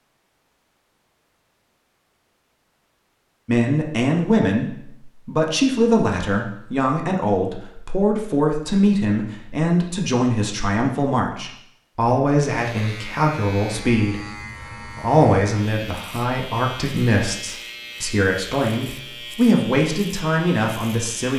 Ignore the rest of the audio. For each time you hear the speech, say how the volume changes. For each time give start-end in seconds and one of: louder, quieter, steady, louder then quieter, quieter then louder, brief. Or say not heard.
3.5-21.3 steady.